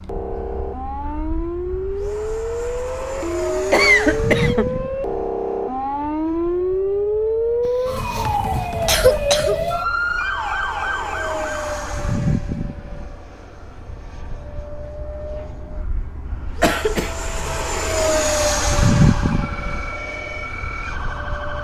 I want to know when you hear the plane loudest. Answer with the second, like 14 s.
19 s.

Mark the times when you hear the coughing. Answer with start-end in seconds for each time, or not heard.
3.7-4.7, 7.7-9.7, 16.6-17.6.